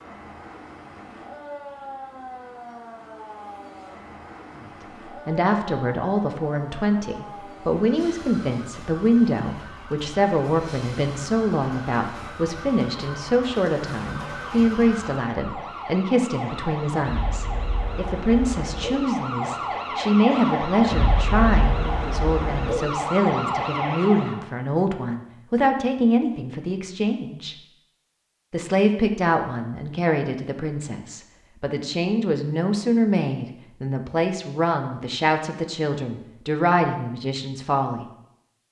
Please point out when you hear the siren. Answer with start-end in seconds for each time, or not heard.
0.0-24.4.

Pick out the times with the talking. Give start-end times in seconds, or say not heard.
4.6-27.6, 28.5-38.0.